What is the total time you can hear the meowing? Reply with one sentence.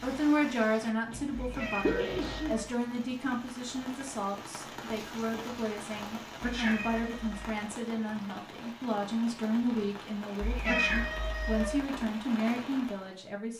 The meowing can be heard for 4 seconds in total.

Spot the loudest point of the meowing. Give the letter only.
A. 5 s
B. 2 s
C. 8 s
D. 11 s
D.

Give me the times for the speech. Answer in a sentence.
You can hear the speech from 0.0 to 13.5 s.